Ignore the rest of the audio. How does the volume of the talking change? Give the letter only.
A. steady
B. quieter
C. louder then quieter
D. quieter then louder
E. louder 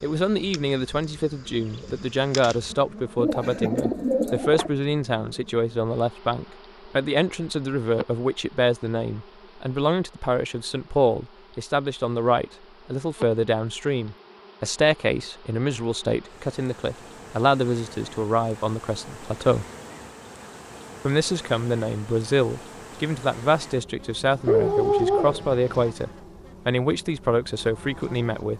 A.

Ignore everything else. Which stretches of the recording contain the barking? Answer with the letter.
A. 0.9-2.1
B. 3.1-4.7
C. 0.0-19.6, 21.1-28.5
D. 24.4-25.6
D.